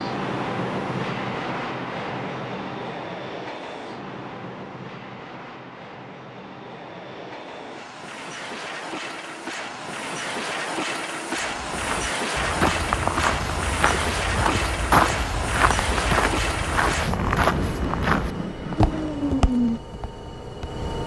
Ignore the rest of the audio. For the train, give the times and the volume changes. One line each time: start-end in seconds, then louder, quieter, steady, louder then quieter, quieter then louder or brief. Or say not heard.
0.0-21.0 quieter then louder.